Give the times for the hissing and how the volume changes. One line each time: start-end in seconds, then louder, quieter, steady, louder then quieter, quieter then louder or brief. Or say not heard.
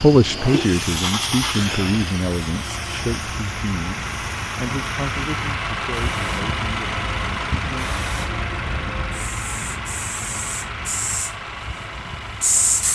0.0-12.8 quieter then louder.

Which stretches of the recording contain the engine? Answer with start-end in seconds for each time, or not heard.
0.0-12.8.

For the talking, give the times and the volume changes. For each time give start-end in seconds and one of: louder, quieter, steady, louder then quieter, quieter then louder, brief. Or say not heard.
0.0-6.9 quieter.